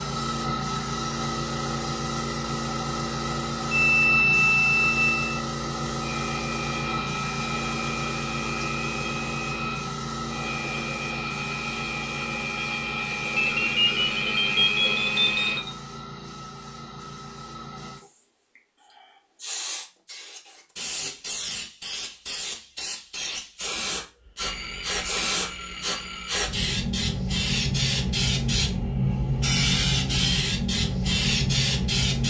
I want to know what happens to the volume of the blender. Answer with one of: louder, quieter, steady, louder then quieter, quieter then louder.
louder.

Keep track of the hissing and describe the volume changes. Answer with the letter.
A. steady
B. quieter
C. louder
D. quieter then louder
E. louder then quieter
D.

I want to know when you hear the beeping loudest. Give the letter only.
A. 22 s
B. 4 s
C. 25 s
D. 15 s
B.